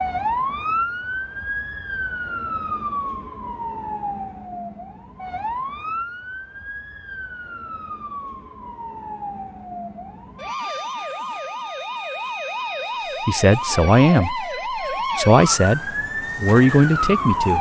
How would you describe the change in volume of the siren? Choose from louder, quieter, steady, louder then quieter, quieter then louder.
quieter then louder.